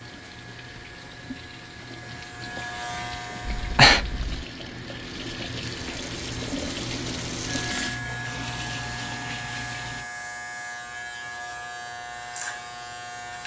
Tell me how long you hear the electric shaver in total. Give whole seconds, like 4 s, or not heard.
10 s.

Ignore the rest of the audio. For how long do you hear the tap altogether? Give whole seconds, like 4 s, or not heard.
10 s.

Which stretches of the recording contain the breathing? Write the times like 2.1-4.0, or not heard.
3.5-4.5.